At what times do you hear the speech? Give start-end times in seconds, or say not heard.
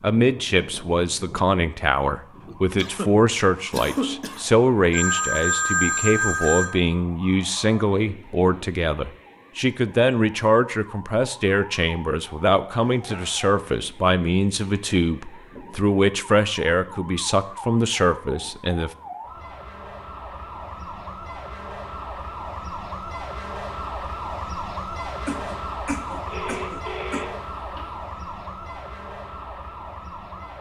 0.0-18.9.